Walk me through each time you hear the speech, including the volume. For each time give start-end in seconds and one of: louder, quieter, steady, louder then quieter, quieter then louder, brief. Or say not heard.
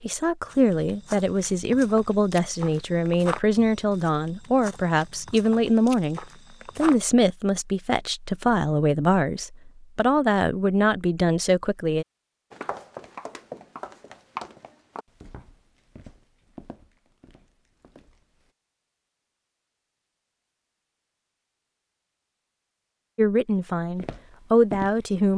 0.0-12.1 steady
23.1-25.3 brief.